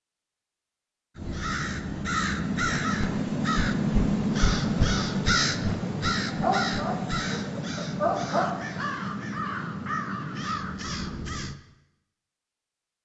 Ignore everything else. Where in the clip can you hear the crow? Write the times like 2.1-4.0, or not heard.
1.1-11.6.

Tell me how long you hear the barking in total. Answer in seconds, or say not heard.
2 s.